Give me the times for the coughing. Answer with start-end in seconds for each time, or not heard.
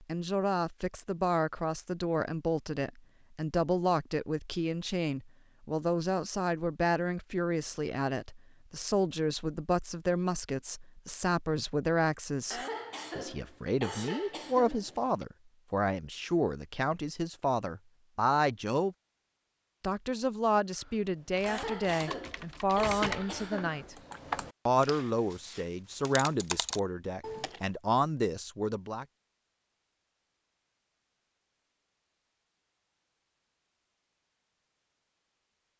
12.5-15.2, 21.4-24.2.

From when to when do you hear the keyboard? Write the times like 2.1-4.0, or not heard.
20.7-27.6.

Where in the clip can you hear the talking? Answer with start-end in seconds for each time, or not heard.
0.0-18.9, 19.8-23.9, 24.6-29.1.